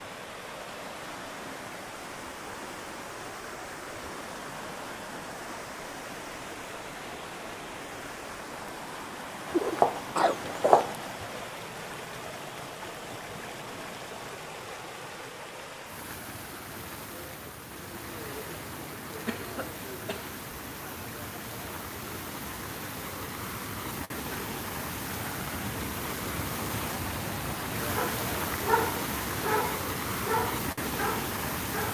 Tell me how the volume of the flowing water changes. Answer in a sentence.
The loudness of the flowing water goes up.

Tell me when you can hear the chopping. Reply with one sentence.
You can hear the chopping from 9.4 to 11.4 s.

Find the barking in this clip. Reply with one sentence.
You can hear the barking from 27.9 to 31.9 s.